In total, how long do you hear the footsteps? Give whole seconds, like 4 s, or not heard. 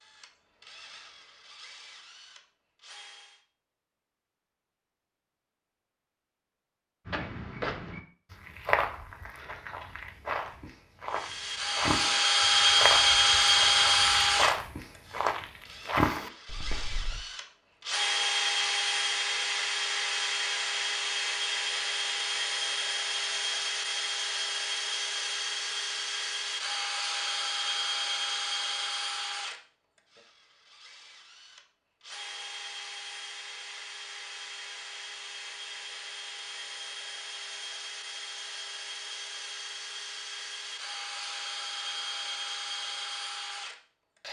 10 s.